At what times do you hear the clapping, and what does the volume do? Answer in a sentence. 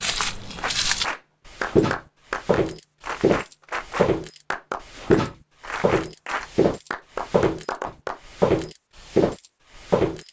The clapping can be heard from 0.6 to 8.2 s, at a steady volume.